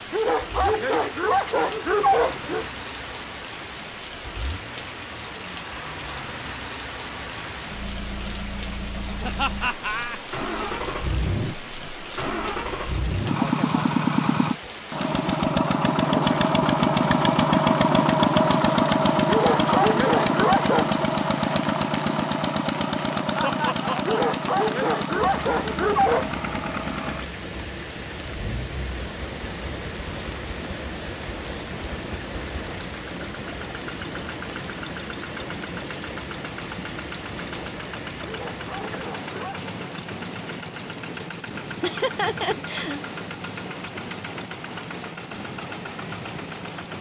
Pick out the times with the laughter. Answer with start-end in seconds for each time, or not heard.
9.2-10.2, 23.4-24.1, 41.8-43.0.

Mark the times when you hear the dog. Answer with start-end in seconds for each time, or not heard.
0.1-2.7, 19.2-20.9, 24.1-26.3, 38.2-39.8.